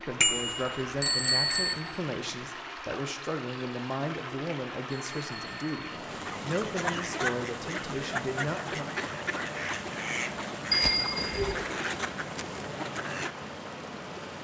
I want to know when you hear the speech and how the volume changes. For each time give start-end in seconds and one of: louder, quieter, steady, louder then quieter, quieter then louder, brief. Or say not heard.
0.0-9.0 steady.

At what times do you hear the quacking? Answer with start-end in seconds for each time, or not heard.
6.0-13.3.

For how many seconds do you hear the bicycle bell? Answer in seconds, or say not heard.
3 s.